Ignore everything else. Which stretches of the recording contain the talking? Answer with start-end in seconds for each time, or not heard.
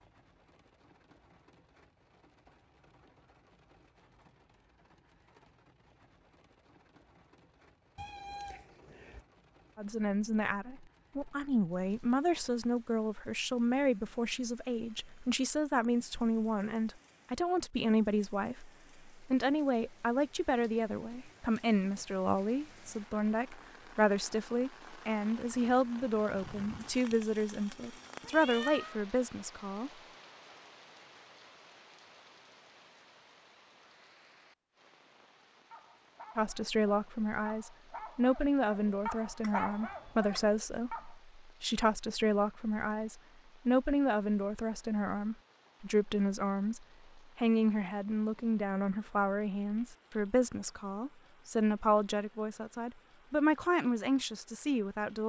9.8-29.9, 36.4-55.2.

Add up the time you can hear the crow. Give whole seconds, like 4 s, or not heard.
not heard.